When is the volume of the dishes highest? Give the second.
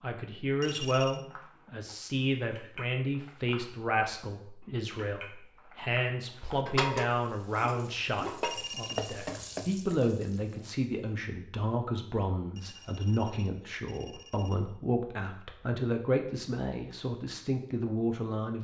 7 s.